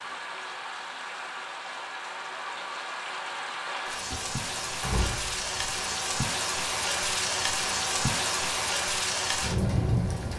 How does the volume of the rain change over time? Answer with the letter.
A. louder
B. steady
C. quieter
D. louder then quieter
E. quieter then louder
A.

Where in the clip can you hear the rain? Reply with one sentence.
You can hear the rain from 0.0 to 10.3 s.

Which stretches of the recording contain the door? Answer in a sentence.
The door can be heard from 4.1 to 6.0 s.